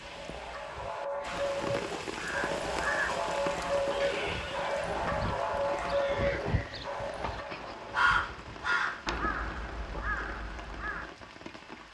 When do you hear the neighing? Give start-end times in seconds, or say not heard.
3.9-4.8.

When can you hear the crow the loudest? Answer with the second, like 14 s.
8 s.